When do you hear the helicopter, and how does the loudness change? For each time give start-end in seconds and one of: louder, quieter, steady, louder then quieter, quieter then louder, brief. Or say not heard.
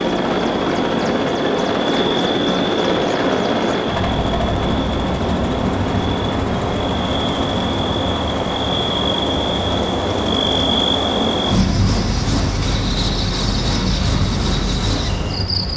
0.0-15.7 quieter.